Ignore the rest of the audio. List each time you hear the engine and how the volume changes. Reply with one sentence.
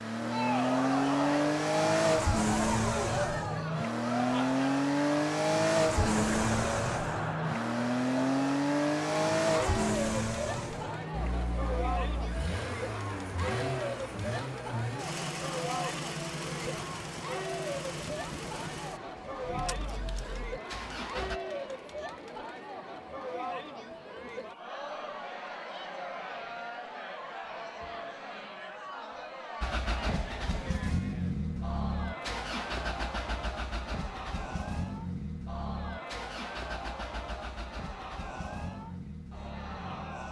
The engine can be heard from 0.0 to 21.4 s, getting quieter; and from 29.6 to 40.2 s, getting quieter.